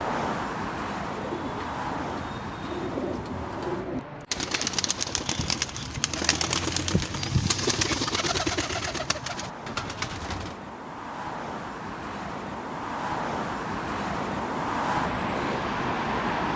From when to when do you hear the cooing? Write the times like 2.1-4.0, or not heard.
1.1-10.6.